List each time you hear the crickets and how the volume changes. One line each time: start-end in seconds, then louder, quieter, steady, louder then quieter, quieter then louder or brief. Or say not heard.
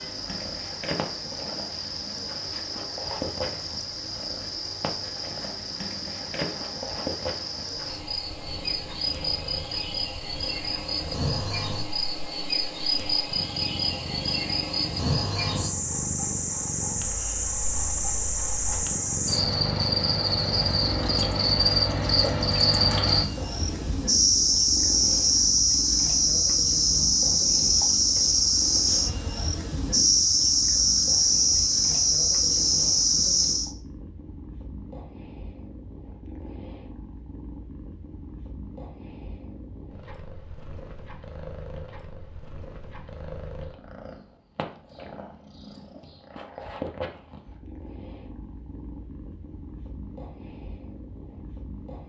0.0-33.7 louder.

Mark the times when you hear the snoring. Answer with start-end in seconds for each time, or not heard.
not heard.